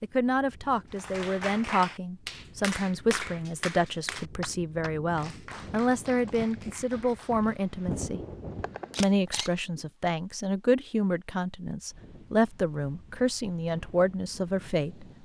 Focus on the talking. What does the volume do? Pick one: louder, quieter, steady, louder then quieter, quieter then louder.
steady.